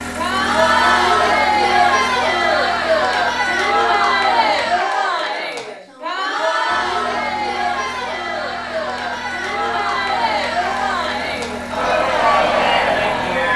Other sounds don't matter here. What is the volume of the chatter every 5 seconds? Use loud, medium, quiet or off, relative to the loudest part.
loud, medium, loud.